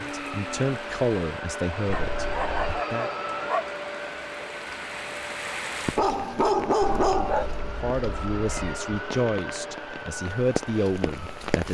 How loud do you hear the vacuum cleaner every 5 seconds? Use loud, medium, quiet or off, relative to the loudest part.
loud, loud, medium.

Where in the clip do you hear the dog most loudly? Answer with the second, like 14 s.
7 s.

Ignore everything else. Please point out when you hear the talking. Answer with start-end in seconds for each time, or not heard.
0.0-3.1, 7.7-11.6.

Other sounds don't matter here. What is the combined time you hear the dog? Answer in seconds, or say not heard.
3 s.